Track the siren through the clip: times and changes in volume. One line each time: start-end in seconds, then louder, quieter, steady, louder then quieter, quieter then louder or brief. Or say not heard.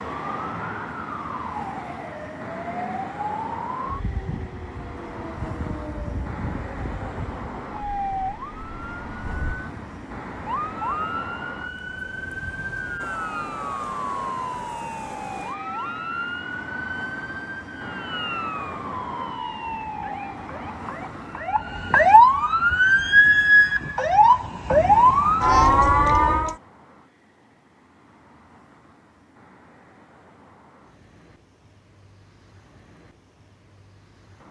0.0-26.6 louder.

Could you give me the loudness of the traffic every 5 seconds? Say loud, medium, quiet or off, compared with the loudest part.
loud, loud, loud, loud, loud, quiet, quiet.